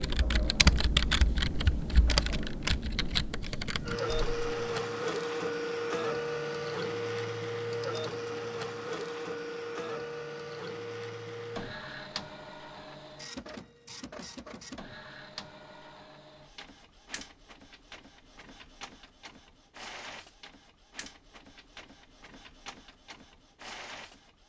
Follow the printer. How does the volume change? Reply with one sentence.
The volume of the printer goes down.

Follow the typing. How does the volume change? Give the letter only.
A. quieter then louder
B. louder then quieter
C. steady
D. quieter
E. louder
D.